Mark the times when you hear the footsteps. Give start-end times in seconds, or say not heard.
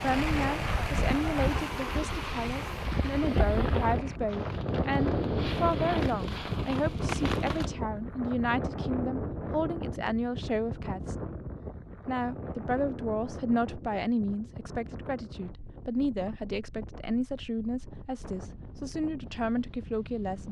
not heard.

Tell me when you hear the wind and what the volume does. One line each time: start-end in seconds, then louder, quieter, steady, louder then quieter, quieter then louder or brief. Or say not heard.
0.0-20.4 quieter.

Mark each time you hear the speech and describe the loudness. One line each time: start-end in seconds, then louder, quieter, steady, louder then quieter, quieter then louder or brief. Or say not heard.
0.0-11.2 steady
12.1-20.4 steady.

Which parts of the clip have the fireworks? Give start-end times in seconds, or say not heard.
0.0-7.7.